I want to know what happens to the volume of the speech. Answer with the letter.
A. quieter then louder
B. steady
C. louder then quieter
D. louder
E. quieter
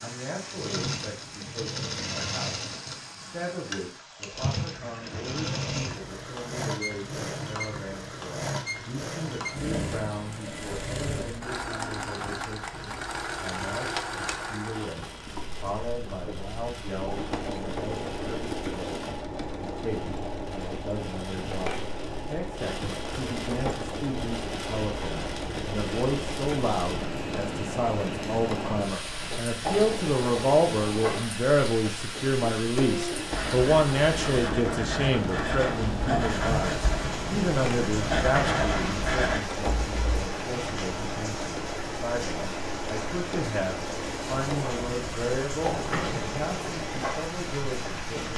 C.